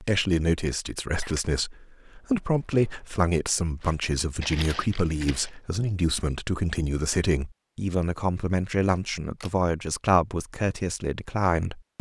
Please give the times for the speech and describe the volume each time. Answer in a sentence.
The speech can be heard from 0.0 to 11.9 s, at a steady volume.